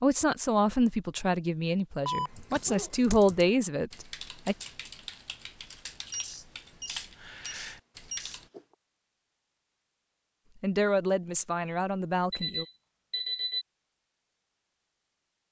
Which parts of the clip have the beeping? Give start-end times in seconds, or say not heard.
2.0-2.9, 6.0-8.6, 12.3-13.7.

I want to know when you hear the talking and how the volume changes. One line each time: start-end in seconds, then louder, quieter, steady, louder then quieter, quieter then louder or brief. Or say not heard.
0.0-4.5 quieter then louder
10.6-12.7 brief.